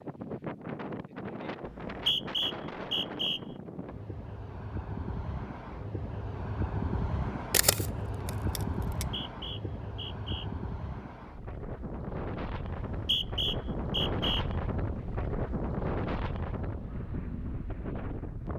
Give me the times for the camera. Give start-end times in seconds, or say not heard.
7.5-9.1.